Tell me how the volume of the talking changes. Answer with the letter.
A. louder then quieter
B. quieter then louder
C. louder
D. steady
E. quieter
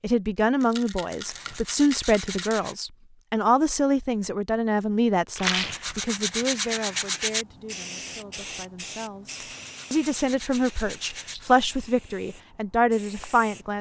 B.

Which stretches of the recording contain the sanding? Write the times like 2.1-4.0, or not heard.
1.2-2.8, 5.4-7.5, 9.3-11.3.